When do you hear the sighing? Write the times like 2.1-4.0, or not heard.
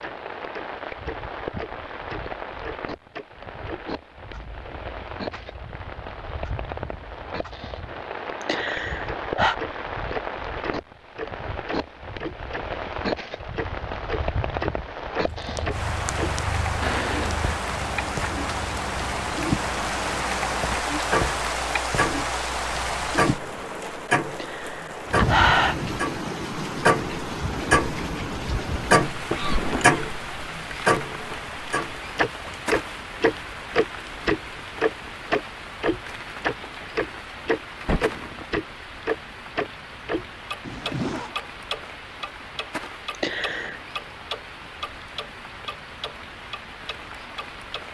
8.4-9.6, 24.3-25.8, 43.1-43.8.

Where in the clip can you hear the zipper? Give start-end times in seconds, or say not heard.
40.6-41.4.